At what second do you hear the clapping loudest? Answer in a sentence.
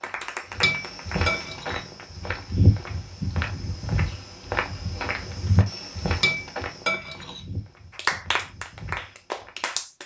The loudest moment of the clapping is at 8 seconds.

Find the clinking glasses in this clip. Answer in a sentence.
You can hear the clinking glasses from 0.6 to 2.2 s and from 6.2 to 7.5 s.